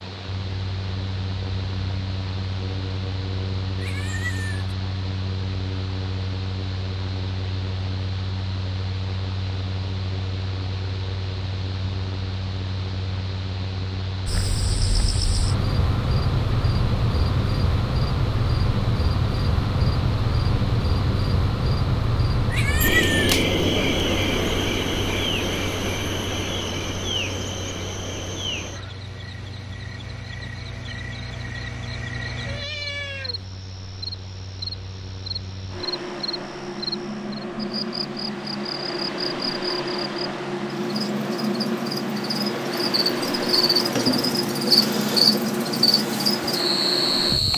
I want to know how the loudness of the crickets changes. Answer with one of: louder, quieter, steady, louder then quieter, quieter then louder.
quieter then louder.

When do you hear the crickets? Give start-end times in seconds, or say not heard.
14.2-47.5.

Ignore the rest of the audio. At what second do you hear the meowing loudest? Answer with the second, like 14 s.
23 s.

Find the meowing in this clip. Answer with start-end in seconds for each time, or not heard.
3.8-4.7, 22.5-23.4, 32.5-33.5.